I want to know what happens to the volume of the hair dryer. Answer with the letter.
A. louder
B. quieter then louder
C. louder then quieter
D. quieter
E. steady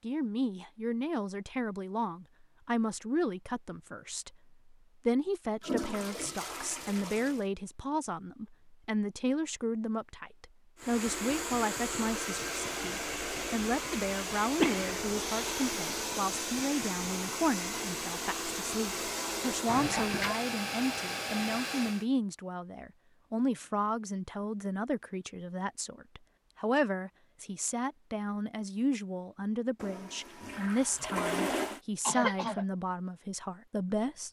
E.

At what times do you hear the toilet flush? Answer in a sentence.
You can hear the toilet flush from 5.6 to 7.5 s, from 19.6 to 20.4 s and from 29.8 to 31.8 s.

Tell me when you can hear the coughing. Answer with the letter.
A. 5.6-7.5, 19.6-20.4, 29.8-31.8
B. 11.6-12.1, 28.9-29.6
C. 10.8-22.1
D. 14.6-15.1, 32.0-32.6
D.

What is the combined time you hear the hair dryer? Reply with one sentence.
The hair dryer can be heard for 11 seconds in total.